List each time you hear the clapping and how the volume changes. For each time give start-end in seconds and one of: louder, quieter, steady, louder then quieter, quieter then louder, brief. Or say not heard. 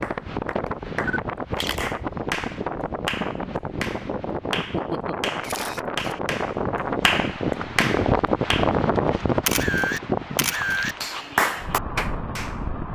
0.0-8.7 louder
11.0-12.7 brief.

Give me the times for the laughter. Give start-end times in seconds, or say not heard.
4.5-5.3.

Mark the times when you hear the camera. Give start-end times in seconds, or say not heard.
1.1-1.8, 5.4-6.2, 9.4-10.9.